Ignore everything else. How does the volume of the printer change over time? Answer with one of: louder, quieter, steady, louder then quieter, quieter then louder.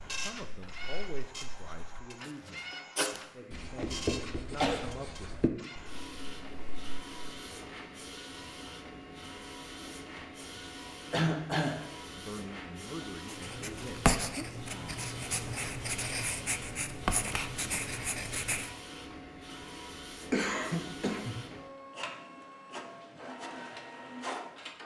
steady.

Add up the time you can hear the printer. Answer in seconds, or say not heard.
25 s.